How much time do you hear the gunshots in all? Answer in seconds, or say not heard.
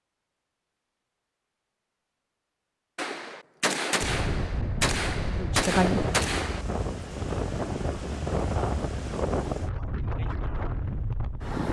4 s.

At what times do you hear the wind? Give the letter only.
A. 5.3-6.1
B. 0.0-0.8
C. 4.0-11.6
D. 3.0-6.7
C.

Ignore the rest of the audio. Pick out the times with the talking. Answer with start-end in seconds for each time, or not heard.
5.3-6.1.